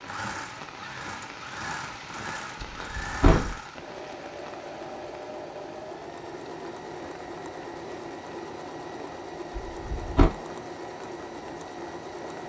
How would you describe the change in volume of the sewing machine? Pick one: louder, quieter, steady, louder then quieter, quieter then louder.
steady.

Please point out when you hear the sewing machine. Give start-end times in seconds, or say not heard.
0.0-12.4.